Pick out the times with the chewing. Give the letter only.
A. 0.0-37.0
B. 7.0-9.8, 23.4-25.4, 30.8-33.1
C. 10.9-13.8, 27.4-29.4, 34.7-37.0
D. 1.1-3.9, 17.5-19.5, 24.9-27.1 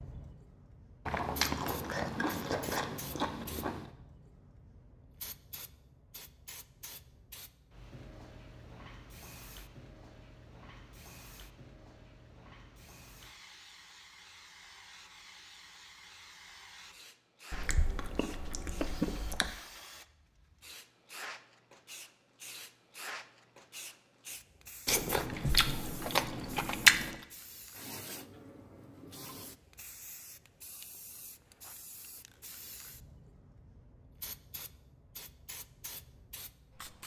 D.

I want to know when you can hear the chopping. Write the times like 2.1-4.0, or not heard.
not heard.